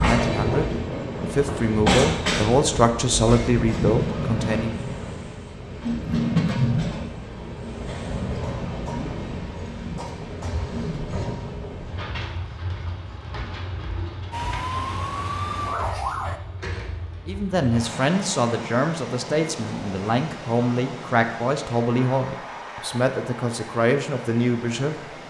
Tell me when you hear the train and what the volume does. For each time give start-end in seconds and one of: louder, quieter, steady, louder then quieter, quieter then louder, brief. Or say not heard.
0.0-25.2 quieter.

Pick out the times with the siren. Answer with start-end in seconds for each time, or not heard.
14.3-16.4.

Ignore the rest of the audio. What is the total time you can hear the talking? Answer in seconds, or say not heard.
13 s.